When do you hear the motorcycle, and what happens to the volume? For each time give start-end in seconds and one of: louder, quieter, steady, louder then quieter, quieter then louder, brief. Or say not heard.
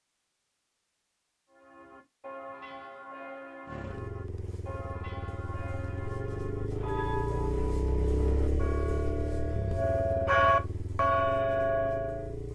3.6-12.5 louder then quieter.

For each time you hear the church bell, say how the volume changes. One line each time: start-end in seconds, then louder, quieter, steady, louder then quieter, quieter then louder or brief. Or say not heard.
1.5-12.3 louder.